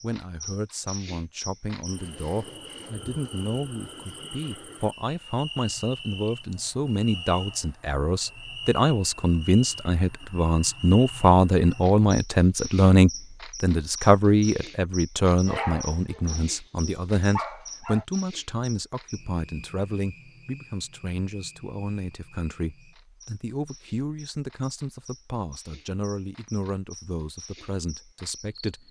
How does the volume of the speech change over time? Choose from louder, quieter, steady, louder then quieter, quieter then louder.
louder then quieter.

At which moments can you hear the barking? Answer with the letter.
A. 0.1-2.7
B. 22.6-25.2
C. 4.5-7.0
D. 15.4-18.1
D.